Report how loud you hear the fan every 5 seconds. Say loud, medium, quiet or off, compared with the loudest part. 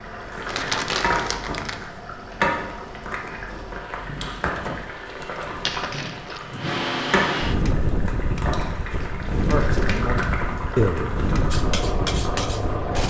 quiet, loud, loud.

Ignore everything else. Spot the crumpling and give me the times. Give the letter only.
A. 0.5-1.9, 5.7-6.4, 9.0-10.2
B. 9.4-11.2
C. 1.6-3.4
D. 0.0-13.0
A.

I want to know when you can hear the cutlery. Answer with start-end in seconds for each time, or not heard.
11.5-13.0.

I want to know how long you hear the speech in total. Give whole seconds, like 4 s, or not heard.
2 s.